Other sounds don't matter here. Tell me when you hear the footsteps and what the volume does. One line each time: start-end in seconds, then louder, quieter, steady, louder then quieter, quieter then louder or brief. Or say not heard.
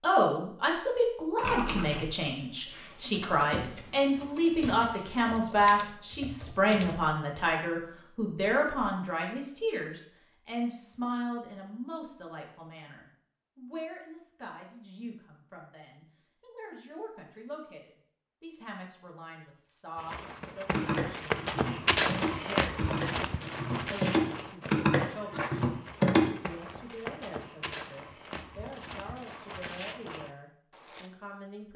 19.9-31.1 quieter.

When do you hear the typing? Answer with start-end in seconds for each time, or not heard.
1.4-7.0, 20.7-26.3.